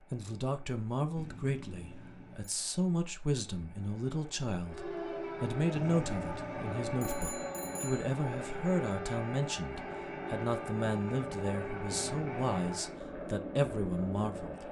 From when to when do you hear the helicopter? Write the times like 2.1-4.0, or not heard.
0.0-14.6.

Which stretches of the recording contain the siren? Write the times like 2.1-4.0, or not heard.
4.7-12.9.